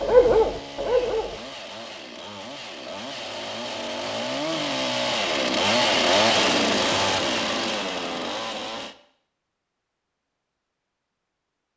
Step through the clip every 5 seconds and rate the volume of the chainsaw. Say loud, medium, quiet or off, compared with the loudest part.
medium, loud, off.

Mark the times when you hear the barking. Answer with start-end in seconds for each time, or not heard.
0.0-1.4.